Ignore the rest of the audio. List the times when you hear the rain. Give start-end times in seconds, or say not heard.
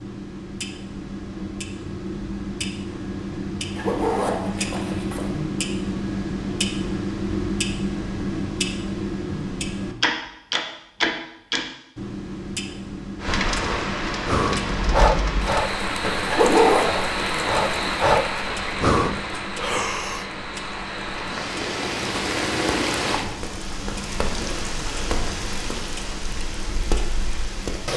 13.2-27.9.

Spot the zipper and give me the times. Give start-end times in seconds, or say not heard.
3.8-5.2, 16.2-16.9.